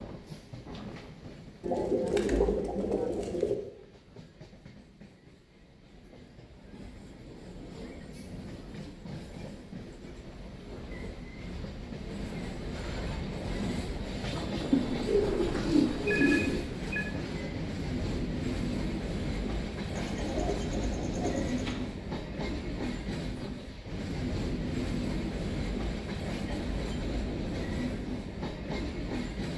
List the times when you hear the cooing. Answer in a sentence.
The cooing can be heard from 1.6 to 3.5 s, from 14.7 to 16.6 s and from 19.9 to 21.8 s.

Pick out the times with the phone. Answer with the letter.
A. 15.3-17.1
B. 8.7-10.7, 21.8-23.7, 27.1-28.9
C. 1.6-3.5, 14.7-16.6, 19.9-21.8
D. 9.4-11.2
A.